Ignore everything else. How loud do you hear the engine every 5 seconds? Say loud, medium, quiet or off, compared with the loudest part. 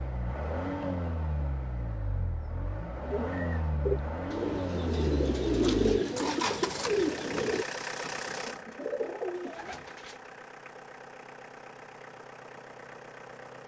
loud, loud, medium.